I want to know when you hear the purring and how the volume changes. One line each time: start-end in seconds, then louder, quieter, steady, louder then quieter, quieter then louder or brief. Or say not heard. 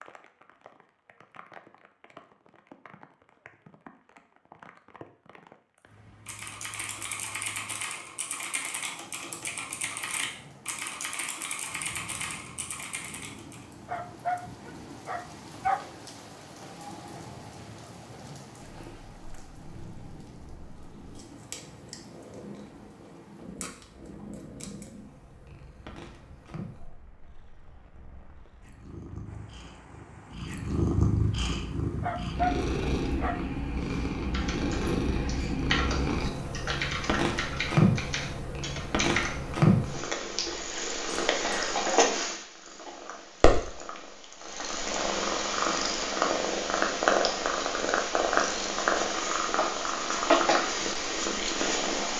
18.6-52.1 louder.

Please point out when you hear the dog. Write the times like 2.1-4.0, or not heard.
13.8-15.8, 32.0-33.4.